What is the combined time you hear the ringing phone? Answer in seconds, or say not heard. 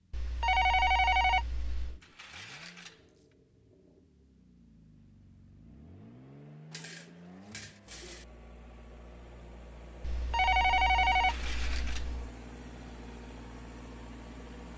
4 s.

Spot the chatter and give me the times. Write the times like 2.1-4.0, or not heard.
not heard.